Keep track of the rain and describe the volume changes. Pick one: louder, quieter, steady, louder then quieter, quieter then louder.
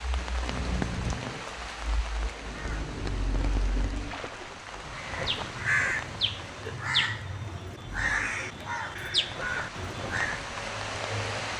quieter then louder.